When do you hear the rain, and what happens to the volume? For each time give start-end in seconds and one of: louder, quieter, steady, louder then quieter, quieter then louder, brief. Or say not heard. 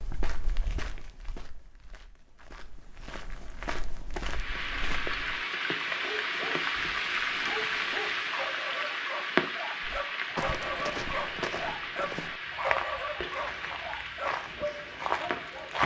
4.2-15.8 quieter.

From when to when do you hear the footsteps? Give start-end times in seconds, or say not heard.
0.0-5.4, 9.8-15.8.